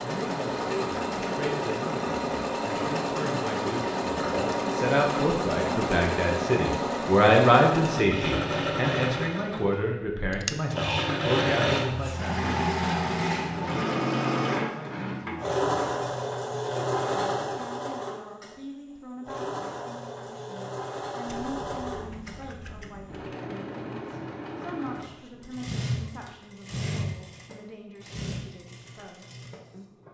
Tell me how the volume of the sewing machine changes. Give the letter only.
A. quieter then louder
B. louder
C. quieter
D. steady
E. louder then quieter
C.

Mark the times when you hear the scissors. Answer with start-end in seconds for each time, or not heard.
10.3-10.8, 21.2-23.2.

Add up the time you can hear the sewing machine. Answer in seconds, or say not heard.
30 s.